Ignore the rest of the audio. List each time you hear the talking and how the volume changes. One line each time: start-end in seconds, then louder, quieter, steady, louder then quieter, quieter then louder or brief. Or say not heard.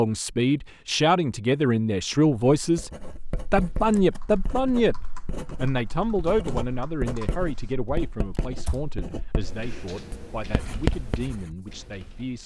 0.0-2.9 brief
3.5-12.4 quieter.